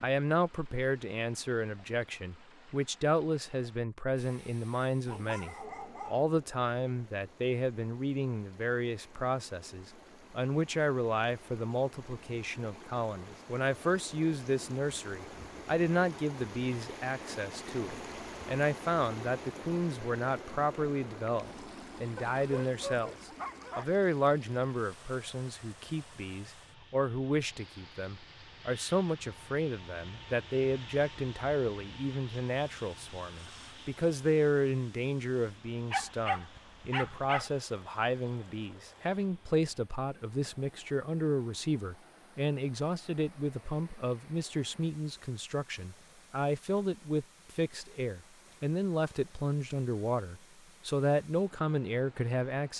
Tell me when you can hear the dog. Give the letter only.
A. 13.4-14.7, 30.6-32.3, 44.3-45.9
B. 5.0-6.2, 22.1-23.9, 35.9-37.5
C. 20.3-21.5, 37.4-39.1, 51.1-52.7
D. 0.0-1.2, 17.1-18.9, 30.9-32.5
B.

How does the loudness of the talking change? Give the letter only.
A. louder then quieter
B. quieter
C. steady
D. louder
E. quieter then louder
C.